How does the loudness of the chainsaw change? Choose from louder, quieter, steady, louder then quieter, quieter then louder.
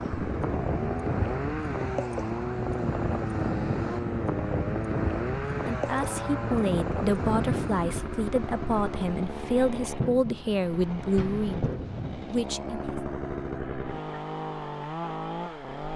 steady.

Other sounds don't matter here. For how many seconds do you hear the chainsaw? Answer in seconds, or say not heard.
16 s.